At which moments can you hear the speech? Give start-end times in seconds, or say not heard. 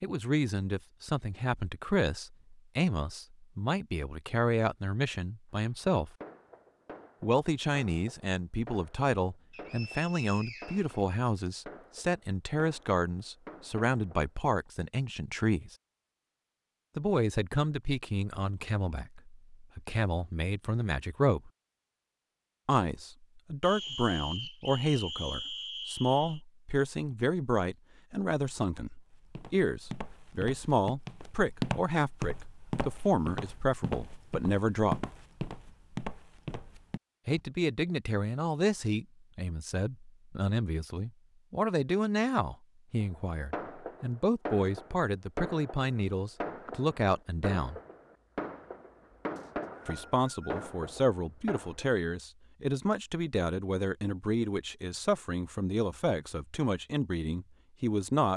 0.0-6.1, 7.2-15.8, 16.9-21.5, 22.6-35.0, 37.2-47.8, 49.9-58.3.